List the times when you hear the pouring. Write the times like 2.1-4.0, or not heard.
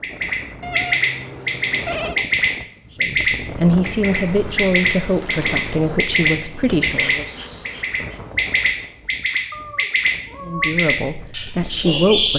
not heard.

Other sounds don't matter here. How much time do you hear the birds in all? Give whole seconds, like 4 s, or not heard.
12 s.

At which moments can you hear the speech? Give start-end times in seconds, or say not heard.
3.0-7.2, 10.4-12.3.